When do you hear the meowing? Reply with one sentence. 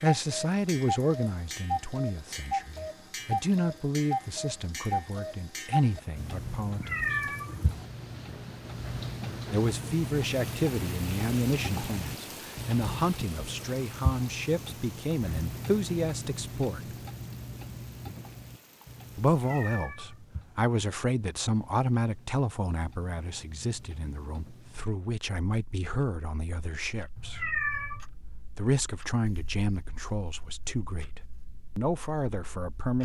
The meowing can be heard from 6.7 to 7.7 s, from 19.3 to 20.2 s and from 27.1 to 28.1 s.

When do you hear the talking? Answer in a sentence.
The talking can be heard from 0.0 to 7.2 s, from 9.5 to 16.8 s, from 19.1 to 27.4 s and from 28.6 to 33.0 s.